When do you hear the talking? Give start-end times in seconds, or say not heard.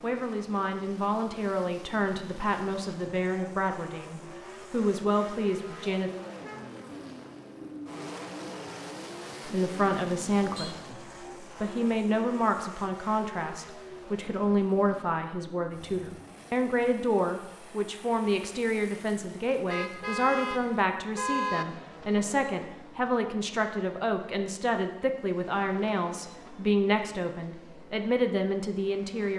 0.0-6.1, 9.4-29.3.